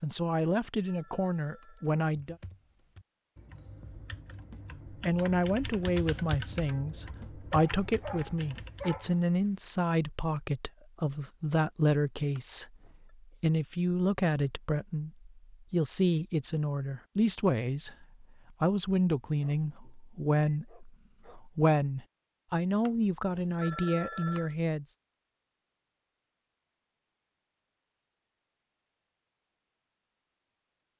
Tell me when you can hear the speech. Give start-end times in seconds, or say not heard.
0.0-2.4, 4.9-12.7, 13.4-24.9.